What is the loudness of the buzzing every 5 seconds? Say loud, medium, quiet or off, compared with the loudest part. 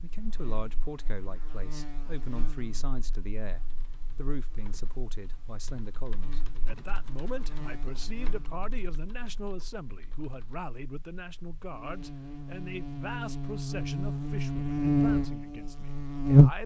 quiet, quiet, medium, loud.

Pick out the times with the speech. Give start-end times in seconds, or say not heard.
0.0-16.6.